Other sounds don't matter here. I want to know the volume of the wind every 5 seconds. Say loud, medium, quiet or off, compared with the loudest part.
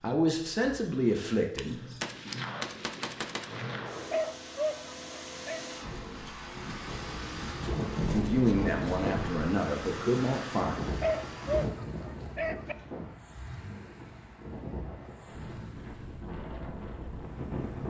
off, loud, loud, loud.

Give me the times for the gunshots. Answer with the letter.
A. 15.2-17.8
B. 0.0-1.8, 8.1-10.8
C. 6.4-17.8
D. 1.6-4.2
D.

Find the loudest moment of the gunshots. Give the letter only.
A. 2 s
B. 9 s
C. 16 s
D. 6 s
A.